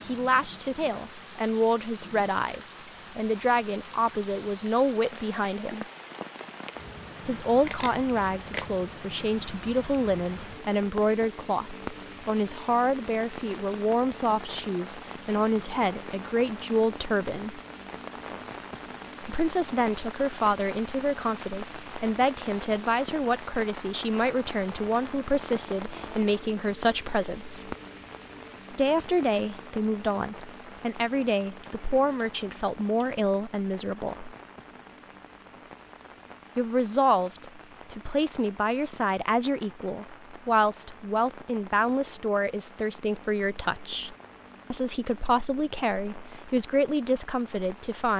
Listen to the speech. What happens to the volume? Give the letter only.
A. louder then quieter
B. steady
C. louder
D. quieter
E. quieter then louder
B.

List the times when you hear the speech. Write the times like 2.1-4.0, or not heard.
0.1-5.8, 7.2-17.6, 19.2-27.8, 28.7-34.4, 36.5-48.1.